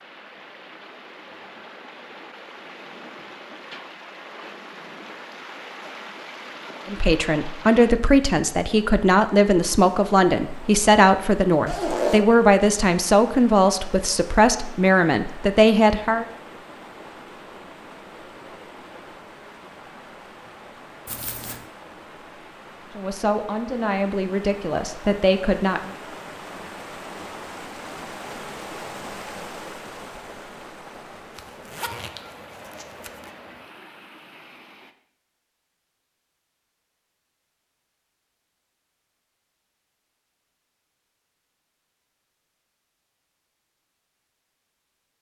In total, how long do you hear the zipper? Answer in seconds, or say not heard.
3 s.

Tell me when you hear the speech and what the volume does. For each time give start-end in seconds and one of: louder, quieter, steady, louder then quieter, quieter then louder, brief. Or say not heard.
6.8-16.2 steady
22.9-25.9 brief.